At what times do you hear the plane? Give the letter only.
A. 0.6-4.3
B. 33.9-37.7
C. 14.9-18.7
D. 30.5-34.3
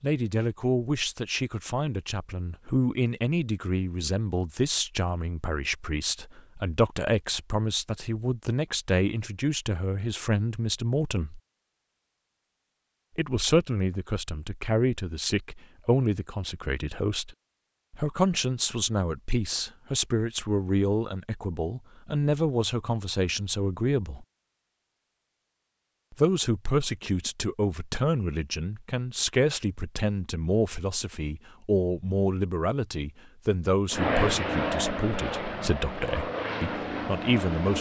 B.